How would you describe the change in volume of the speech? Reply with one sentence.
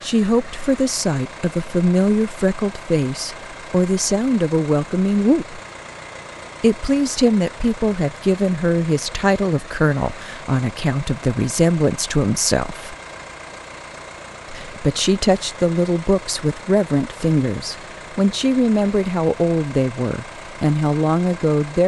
The loudness of the speech stays about the same.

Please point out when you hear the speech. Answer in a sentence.
The speech can be heard from 0.0 to 5.6 s, from 6.6 to 12.9 s and from 14.5 to 21.8 s.